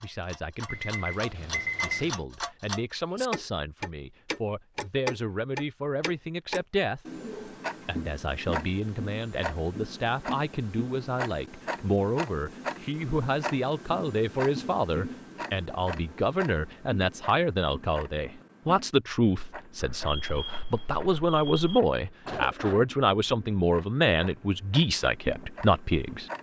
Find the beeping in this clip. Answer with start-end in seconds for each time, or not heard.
0.7-2.2, 19.8-21.8.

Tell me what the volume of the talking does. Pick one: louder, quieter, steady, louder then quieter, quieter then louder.
louder.